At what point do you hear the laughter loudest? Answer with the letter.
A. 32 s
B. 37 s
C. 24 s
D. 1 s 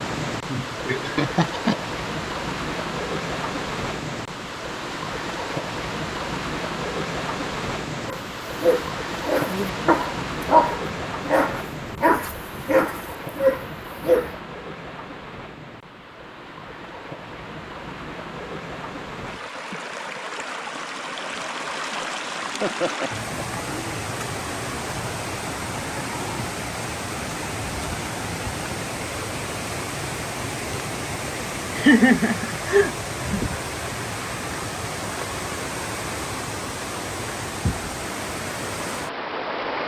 A.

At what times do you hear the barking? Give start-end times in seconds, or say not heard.
8.1-14.3.